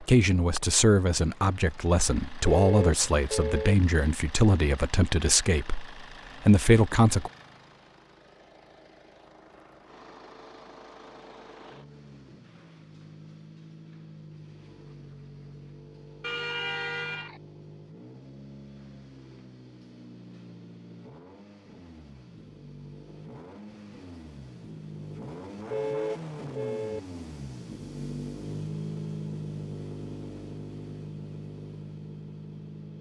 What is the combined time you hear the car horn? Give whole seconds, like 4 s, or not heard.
4 s.